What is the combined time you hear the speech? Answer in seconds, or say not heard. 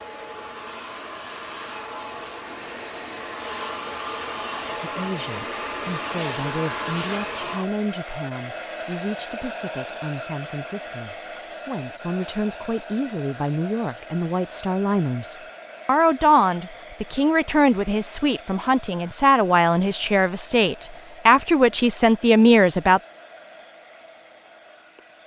18 s.